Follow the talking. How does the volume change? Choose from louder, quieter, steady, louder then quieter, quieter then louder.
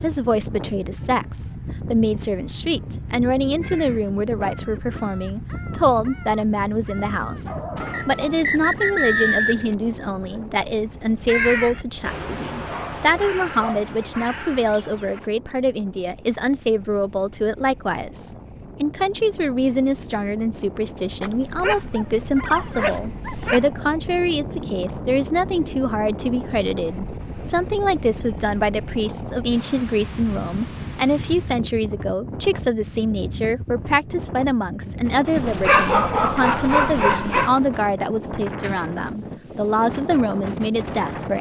steady.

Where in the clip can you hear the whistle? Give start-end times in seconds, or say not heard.
7.9-9.8.